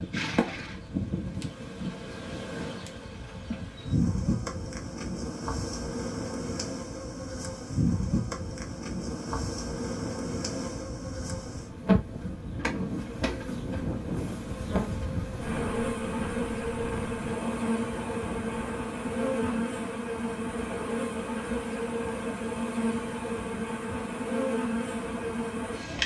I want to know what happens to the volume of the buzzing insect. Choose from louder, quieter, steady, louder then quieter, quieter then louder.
steady.